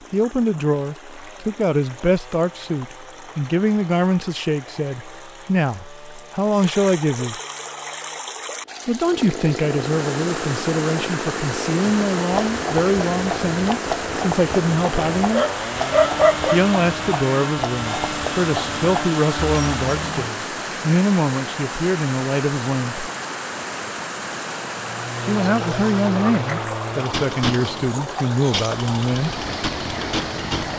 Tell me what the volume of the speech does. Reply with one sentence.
The volume of the speech stays about the same.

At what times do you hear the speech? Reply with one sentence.
The speech can be heard from 0.1 to 7.4 s, from 8.8 to 15.4 s, from 16.5 to 23.1 s and from 25.2 to 29.4 s.